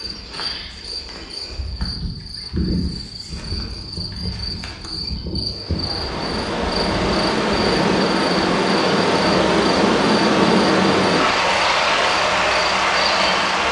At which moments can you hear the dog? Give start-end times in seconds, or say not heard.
not heard.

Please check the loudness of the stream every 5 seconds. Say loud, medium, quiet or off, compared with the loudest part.
off, loud, loud.